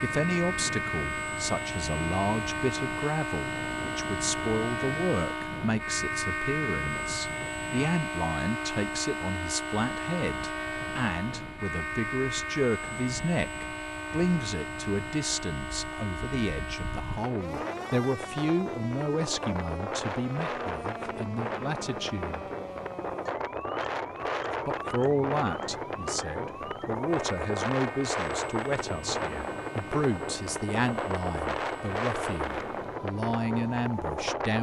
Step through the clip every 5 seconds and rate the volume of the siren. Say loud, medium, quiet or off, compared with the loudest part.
loud, loud, loud, medium, medium, medium, medium.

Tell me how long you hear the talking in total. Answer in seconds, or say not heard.
32 s.